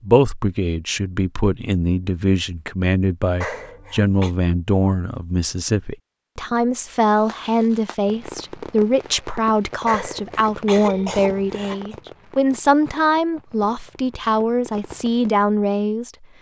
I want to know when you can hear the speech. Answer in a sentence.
The speech can be heard from 0.0 to 16.2 s.